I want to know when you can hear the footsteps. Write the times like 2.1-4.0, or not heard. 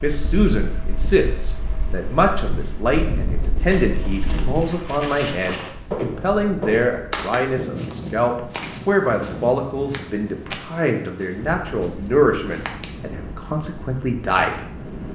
3.6-12.9.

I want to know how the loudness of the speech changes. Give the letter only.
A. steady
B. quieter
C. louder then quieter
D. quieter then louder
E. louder
A.